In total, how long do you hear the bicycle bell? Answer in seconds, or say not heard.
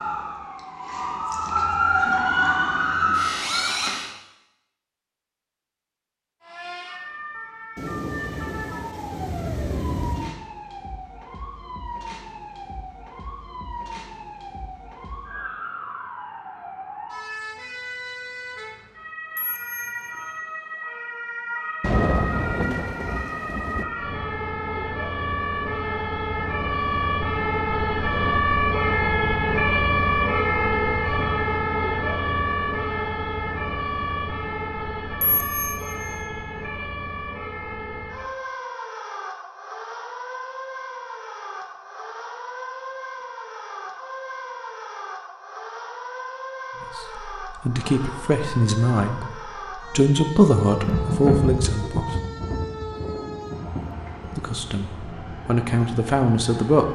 2 s.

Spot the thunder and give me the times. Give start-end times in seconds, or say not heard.
7.8-10.3, 21.8-23.9, 50.6-54.0.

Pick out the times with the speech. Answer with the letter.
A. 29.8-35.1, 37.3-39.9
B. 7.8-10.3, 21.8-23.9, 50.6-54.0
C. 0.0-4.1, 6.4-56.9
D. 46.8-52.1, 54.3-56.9
D.